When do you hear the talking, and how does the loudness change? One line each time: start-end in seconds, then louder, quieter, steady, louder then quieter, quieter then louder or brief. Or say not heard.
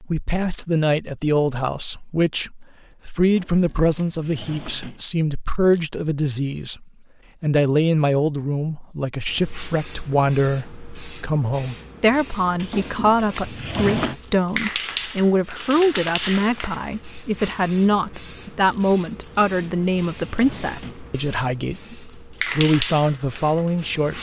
0.0-24.1 steady.